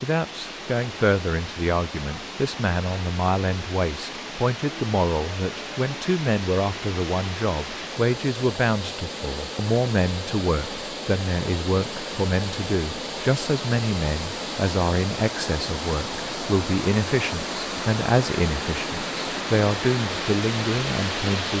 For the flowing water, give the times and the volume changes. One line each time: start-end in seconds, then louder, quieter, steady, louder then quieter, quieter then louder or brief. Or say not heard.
0.0-21.5 louder.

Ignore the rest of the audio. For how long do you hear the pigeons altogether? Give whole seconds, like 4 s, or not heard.
not heard.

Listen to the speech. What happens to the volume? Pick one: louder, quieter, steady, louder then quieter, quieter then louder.
steady.